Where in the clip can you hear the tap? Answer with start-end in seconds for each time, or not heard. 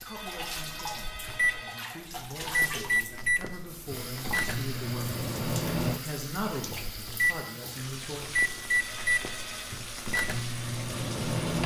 0.0-11.6.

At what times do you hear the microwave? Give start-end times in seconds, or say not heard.
0.0-11.6.